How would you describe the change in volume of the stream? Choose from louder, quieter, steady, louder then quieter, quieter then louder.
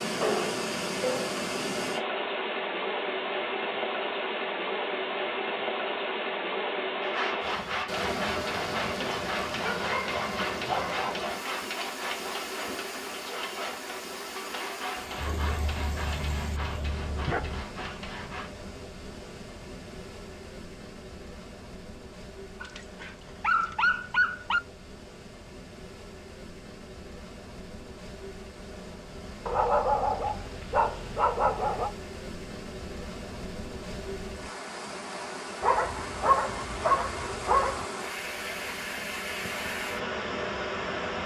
quieter then louder.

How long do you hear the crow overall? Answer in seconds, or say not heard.
not heard.